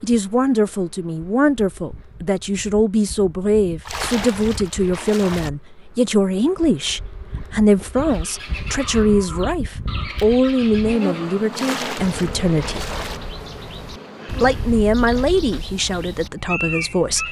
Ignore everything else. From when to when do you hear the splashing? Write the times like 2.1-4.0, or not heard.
3.9-5.5, 11.5-13.2.